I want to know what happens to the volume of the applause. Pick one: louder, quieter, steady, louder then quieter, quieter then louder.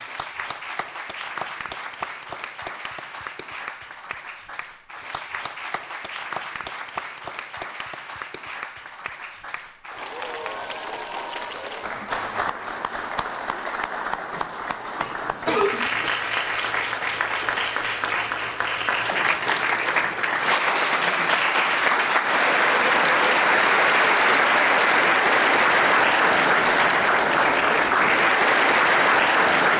louder.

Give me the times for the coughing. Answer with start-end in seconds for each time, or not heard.
14.9-16.1.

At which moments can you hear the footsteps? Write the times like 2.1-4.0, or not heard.
not heard.